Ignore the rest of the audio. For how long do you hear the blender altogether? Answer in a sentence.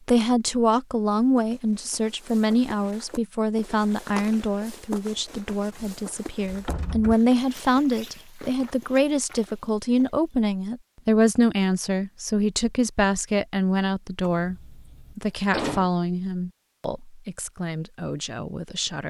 The blender can't be heard in this clip.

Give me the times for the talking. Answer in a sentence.
You can hear the talking from 0.1 to 19.0 s.